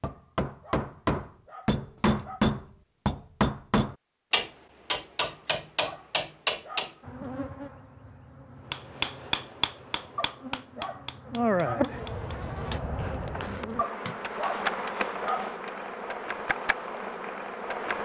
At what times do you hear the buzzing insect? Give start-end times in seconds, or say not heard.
7.0-18.0.